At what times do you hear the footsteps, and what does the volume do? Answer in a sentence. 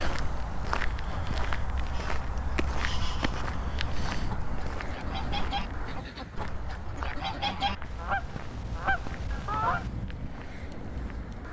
You can hear the footsteps from 0.0 to 11.4 s, getting quieter.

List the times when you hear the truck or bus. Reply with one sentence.
The truck or bus can't be heard in this clip.